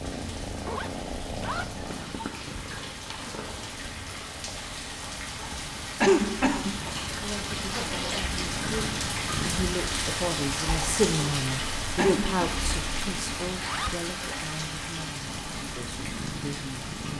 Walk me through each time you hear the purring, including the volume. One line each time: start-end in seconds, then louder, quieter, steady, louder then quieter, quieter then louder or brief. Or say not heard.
0.0-9.8 quieter then louder
15.2-17.1 brief.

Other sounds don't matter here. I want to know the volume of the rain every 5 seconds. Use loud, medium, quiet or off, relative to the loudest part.
medium, loud, loud, medium.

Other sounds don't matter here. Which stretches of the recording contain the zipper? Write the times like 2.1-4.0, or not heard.
0.7-1.8, 7.7-8.3, 13.4-14.0.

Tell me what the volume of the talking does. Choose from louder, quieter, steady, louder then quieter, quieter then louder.
louder then quieter.